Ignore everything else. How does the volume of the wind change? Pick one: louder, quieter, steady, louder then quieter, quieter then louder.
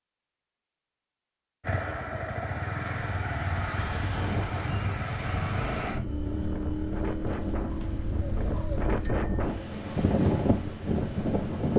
louder.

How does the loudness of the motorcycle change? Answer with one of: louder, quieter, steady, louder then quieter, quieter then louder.
quieter.